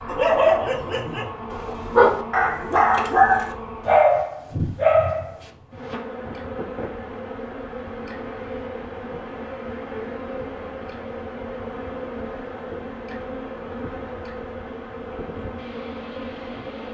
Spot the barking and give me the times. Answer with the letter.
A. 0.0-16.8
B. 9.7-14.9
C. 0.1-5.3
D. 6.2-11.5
C.